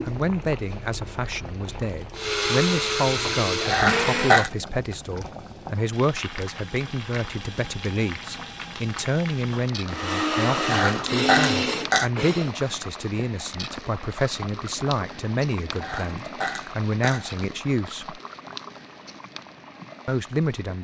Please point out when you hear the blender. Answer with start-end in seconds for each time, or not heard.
2.1-4.5, 9.8-12.6.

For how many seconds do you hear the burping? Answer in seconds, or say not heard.
4 s.